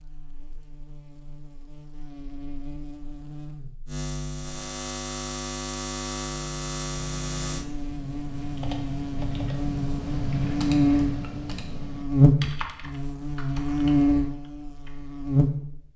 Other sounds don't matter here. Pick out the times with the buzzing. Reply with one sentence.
You can hear the buzzing from 0.0 to 15.9 s.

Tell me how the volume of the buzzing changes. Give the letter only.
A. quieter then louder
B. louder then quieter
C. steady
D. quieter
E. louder
E.